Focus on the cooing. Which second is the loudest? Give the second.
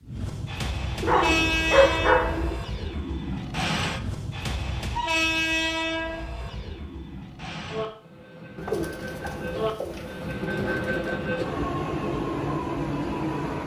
2 s.